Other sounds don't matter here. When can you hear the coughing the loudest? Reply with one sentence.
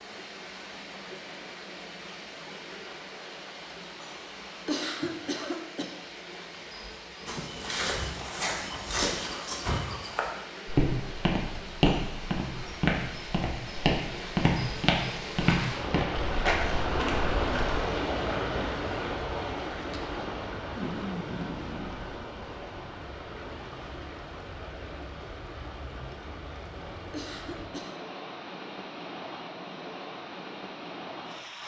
The loudest moment of the coughing is at 5 seconds.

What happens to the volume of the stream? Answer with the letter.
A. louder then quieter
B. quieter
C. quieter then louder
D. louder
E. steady
A.